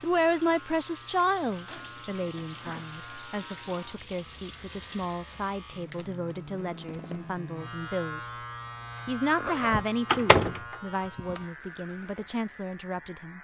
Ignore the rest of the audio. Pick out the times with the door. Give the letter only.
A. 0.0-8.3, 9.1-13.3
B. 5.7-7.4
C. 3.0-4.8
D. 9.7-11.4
D.